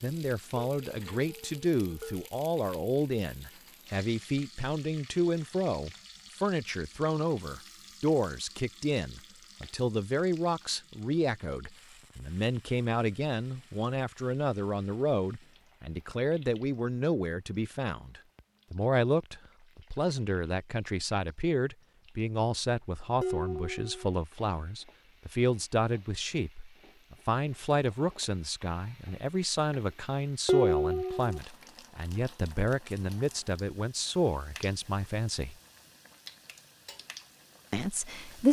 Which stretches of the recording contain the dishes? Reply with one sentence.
The dishes can be heard from 0.6 to 2.2 s, from 23.2 to 24.1 s and from 30.4 to 31.4 s.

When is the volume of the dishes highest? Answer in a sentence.
The volume of the dishes peaks at 31 seconds.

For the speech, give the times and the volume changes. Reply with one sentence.
The speech can be heard from 0.0 to 35.5 s, at a steady volume; and briefly from 37.7 to 38.4 s.